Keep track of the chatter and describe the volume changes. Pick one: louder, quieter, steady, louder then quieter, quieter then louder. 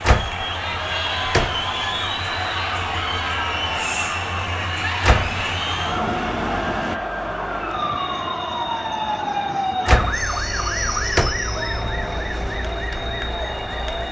quieter.